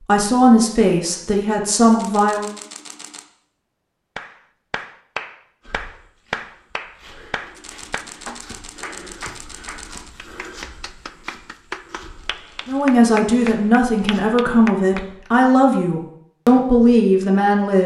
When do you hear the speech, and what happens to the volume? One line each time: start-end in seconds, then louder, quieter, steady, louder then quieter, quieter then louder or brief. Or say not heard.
0.1-2.5 brief
12.7-17.8 steady.